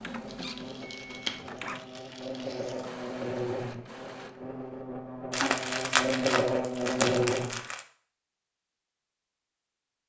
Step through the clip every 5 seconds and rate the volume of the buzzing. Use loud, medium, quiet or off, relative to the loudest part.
medium, loud.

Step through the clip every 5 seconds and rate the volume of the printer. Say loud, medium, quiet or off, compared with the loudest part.
loud, off.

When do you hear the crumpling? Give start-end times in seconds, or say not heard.
0.2-3.0, 5.3-7.8.